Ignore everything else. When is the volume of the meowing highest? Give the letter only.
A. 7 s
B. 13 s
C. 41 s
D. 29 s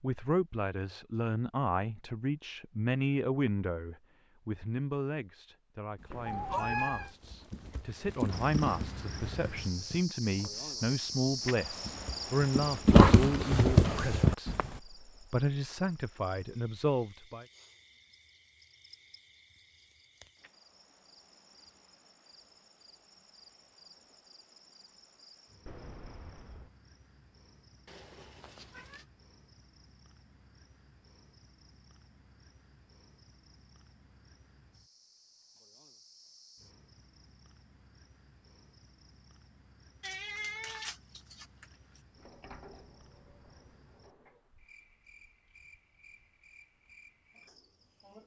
A.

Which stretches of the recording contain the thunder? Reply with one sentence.
The thunder can't be heard in this clip.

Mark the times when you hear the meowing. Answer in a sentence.
You can hear the meowing from 6.2 to 7.1 s, from 27.9 to 29.1 s and from 40.0 to 41.6 s.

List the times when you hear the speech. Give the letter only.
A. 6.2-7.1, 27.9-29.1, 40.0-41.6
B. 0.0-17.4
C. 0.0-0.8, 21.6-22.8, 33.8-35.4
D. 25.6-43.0
B.